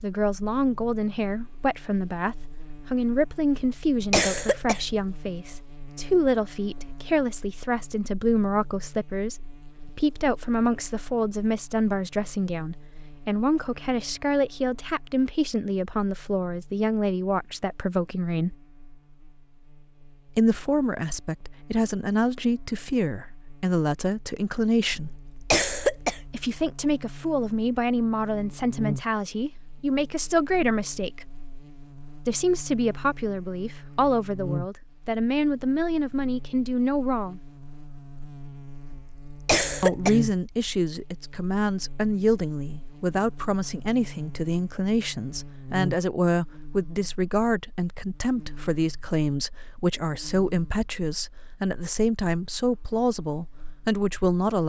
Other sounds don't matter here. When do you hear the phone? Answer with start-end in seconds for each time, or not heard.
not heard.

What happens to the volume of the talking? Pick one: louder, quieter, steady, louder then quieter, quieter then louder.
steady.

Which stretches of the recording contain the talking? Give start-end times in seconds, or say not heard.
0.0-18.6, 20.3-25.1, 26.3-31.2, 32.2-37.4, 39.8-54.6.